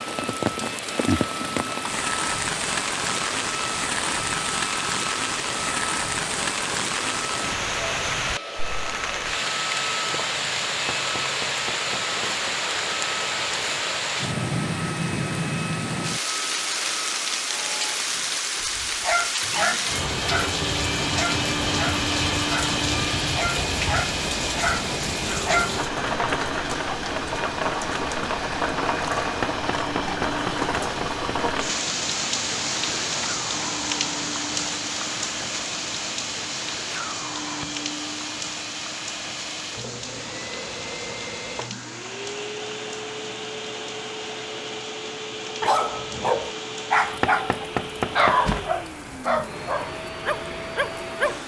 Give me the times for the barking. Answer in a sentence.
The barking can be heard from 18.6 to 25.8 s and from 45.6 to 51.4 s.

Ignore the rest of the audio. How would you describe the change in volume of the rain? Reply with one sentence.
The volume of the rain goes down.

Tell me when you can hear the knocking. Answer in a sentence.
You can hear the knocking from 10.9 to 12.6 s, from 29.4 to 31.1 s and from 47.2 to 48.4 s.